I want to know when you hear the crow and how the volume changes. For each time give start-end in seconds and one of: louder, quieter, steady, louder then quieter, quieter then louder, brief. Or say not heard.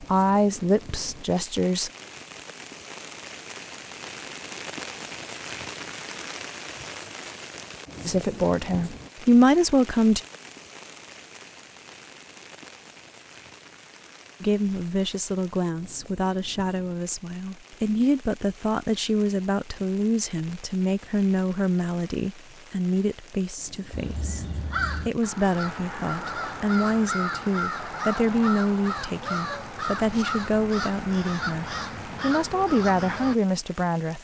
23.9-33.4 steady.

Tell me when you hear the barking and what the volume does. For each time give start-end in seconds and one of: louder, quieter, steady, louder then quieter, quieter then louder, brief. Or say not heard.
not heard.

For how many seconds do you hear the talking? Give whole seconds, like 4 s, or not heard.
23 s.